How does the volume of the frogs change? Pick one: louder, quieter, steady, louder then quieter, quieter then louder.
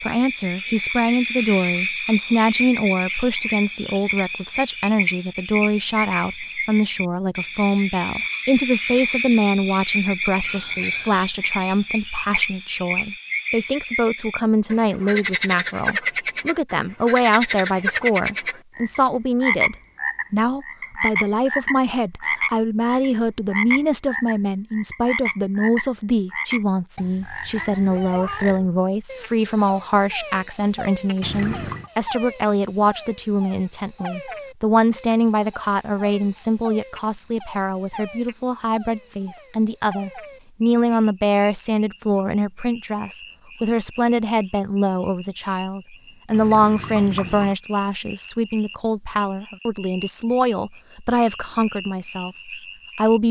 quieter.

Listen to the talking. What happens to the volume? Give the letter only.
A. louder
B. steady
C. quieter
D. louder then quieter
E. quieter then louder
B.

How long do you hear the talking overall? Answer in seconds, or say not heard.
53 s.